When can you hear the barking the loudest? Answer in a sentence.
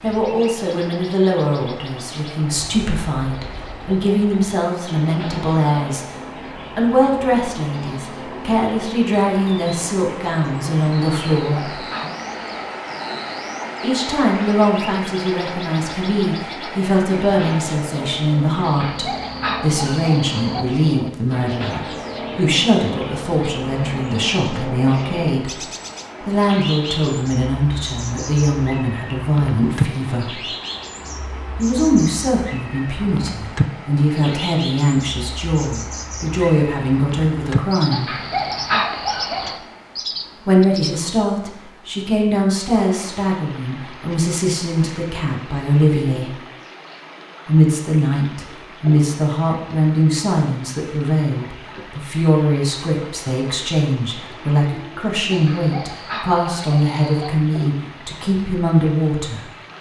The loudest moment of the barking is at 39 seconds.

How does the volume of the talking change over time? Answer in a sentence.
The loudness of the talking stays about the same.